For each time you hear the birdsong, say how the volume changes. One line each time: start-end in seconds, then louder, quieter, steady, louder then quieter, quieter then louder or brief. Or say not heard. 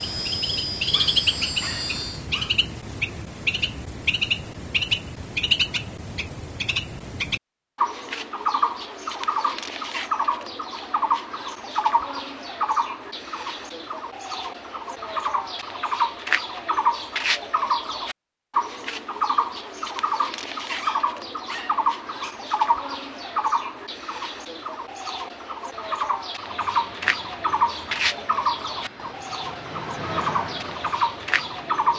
0.0-31.9 steady.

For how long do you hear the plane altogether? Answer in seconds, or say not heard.
8 s.